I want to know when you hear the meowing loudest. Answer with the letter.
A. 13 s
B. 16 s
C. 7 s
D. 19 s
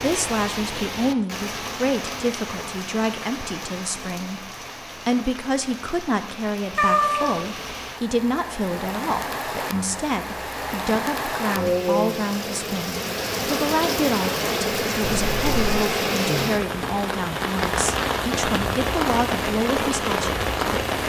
C.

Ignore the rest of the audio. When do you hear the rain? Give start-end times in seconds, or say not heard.
0.0-21.0.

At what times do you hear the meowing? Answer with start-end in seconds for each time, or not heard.
6.8-7.3, 15.0-15.8.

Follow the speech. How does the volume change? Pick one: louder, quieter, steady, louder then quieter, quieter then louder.
steady.